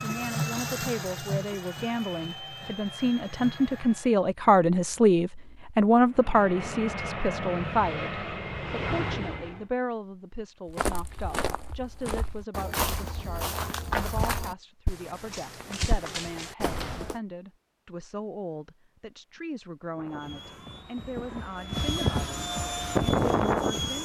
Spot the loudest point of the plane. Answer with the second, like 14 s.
23 s.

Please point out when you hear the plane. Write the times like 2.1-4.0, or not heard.
0.0-4.2, 6.1-9.7, 19.9-23.9.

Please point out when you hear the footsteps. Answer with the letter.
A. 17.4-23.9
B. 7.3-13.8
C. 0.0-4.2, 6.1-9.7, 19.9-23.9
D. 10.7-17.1
D.